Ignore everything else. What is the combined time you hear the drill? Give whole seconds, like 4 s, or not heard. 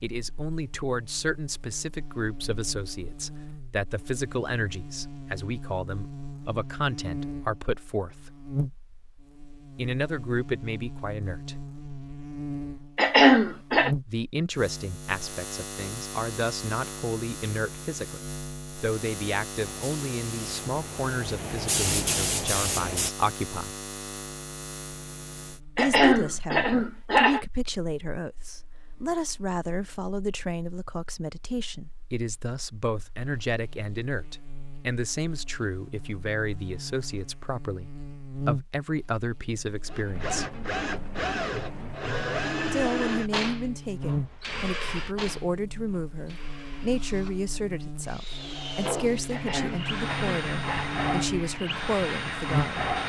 13 s.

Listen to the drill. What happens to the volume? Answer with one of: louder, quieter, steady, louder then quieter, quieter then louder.
quieter then louder.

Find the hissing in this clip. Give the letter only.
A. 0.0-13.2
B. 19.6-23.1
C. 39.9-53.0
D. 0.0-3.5
B.